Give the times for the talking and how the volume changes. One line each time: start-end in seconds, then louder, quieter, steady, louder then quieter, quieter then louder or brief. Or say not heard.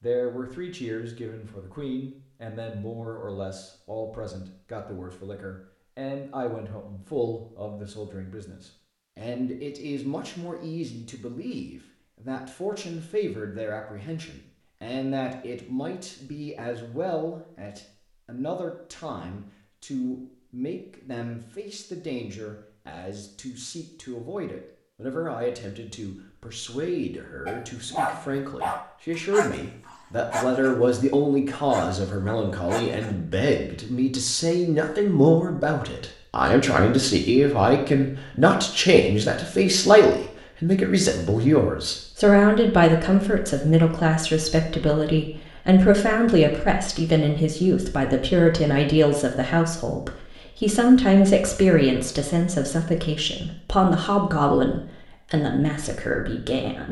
0.0-56.8 louder.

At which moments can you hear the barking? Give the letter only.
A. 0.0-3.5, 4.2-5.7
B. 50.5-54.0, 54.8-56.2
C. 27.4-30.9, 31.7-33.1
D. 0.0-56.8
C.